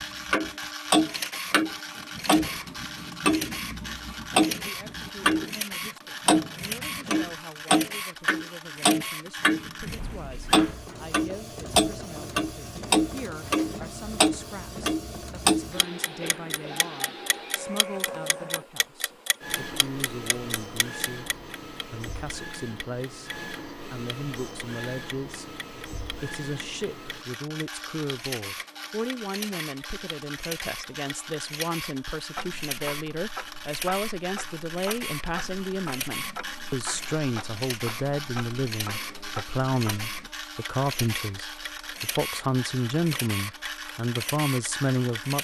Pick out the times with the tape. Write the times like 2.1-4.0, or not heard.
not heard.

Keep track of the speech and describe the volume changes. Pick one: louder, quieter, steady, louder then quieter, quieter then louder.
louder.